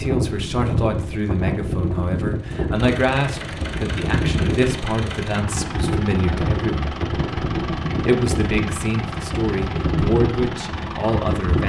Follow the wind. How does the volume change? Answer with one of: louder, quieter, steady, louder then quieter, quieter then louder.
steady.